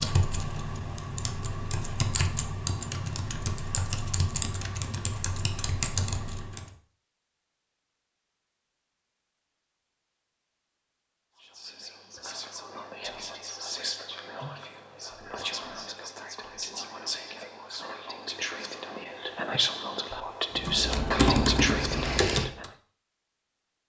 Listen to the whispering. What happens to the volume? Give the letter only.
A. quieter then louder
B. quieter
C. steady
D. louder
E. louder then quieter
D.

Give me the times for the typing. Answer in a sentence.
The typing can be heard from 0.0 to 6.7 s and from 20.6 to 22.6 s.